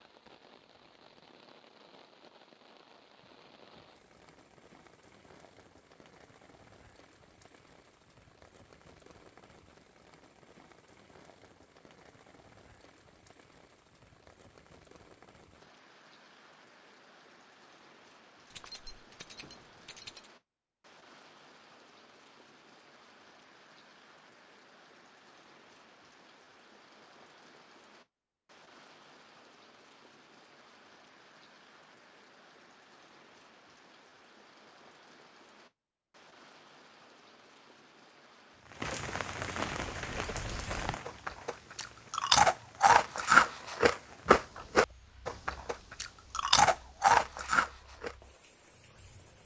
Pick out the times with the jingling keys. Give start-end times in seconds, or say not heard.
18.5-20.3.